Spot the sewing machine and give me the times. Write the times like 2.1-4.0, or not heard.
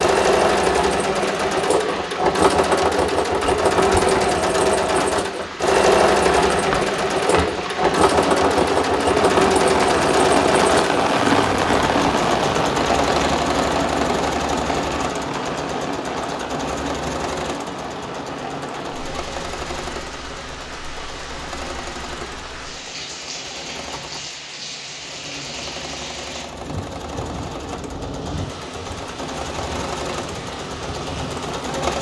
0.0-31.9.